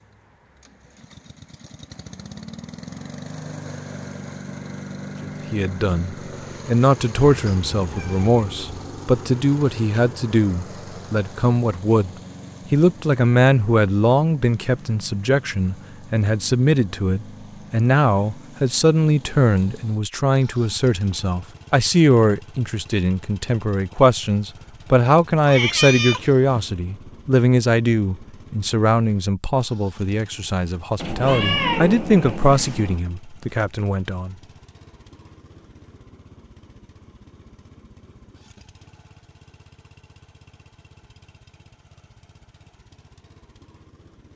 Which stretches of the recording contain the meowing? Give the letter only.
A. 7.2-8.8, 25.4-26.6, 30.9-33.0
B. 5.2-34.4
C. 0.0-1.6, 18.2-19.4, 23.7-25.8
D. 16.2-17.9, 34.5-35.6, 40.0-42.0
A.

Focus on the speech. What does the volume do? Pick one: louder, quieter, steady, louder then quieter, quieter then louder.
steady.